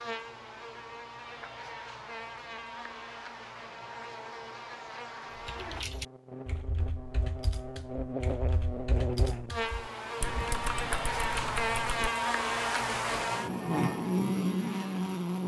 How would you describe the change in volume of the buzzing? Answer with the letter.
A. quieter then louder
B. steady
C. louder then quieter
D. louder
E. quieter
D.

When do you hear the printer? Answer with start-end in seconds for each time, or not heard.
not heard.